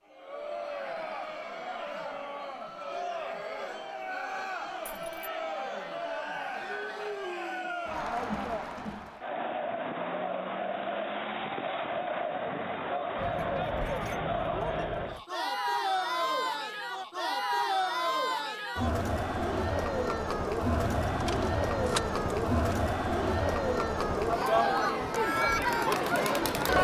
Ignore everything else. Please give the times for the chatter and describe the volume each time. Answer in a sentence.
The chatter can be heard from 0.1 to 26.7 s, getting louder.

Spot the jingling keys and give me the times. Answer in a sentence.
The jingling keys can be heard from 4.8 to 5.3 s, from 13.2 to 15.2 s and from 20.7 to 22.8 s.